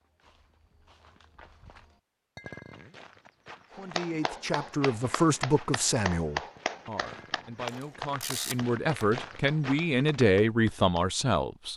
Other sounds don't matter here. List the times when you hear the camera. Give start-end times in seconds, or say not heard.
7.7-9.1.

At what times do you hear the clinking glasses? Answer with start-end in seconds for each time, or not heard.
2.4-3.0, 7.0-7.6.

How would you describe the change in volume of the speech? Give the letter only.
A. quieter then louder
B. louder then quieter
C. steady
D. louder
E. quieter
A.